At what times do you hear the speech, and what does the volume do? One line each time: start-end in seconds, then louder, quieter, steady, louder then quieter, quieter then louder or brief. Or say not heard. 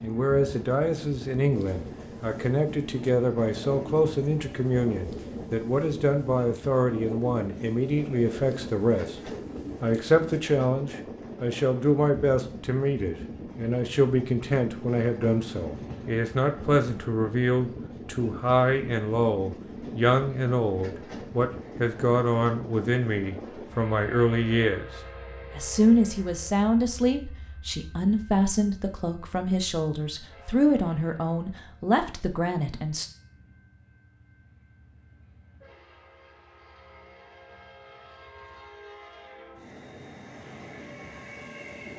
0.0-33.1 steady.